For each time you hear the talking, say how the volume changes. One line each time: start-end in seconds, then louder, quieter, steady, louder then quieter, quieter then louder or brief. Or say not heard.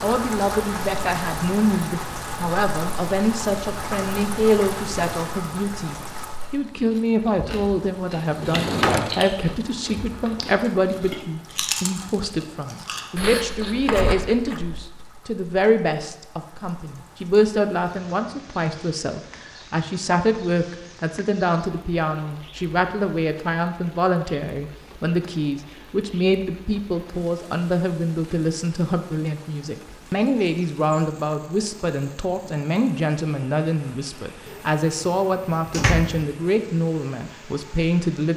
0.0-38.3 steady.